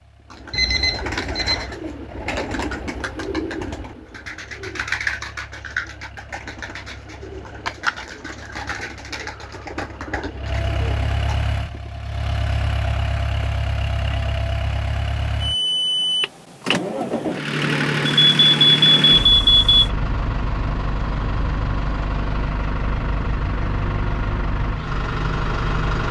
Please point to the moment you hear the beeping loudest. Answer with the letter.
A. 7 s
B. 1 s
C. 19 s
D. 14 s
C.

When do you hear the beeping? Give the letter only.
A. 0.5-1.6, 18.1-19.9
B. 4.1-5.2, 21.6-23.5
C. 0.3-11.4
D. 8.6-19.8
A.